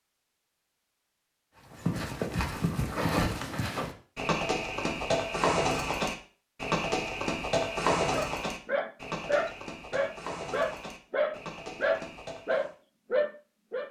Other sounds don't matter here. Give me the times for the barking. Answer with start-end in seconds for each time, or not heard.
8.1-13.8.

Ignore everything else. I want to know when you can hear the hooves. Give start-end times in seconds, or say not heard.
1.7-12.7.